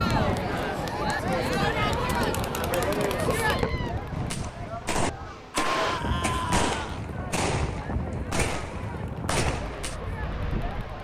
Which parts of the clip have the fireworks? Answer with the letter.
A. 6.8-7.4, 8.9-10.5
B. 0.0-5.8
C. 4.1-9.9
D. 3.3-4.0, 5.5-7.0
C.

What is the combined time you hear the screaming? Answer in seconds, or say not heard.
2 s.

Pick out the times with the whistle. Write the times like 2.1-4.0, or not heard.
not heard.